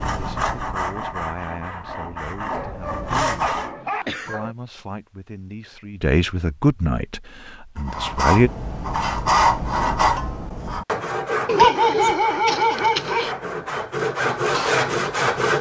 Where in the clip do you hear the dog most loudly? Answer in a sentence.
The loudest moment of the dog is at 12 seconds.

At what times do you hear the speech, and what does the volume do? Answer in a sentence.
You can hear the speech from 0.1 to 8.5 s, getting louder.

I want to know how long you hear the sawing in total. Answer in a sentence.
The sawing can be heard for 11 seconds in total.